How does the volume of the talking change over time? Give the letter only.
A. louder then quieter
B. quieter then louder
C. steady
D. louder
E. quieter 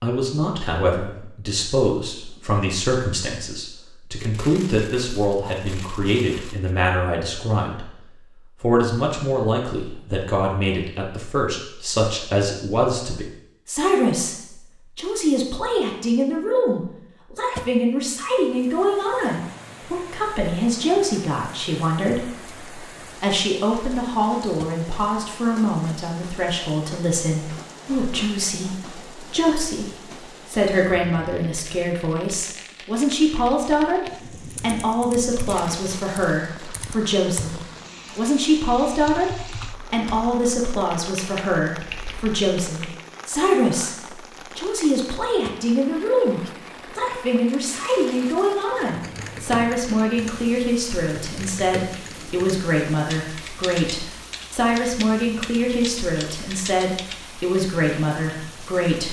C.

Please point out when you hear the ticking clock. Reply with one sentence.
You can't hear the ticking clock here.